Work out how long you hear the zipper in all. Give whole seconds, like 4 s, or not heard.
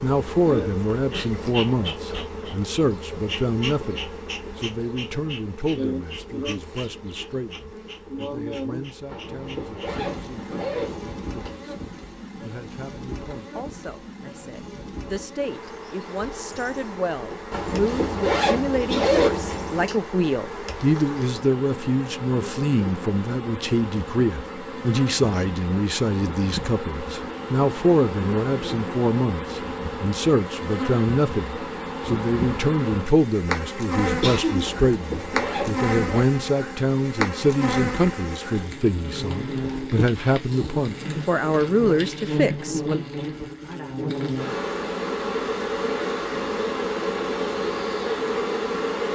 7 s.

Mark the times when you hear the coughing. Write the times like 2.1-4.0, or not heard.
18.7-19.2, 34.0-34.9.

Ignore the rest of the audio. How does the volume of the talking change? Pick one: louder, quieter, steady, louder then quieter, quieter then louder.
quieter then louder.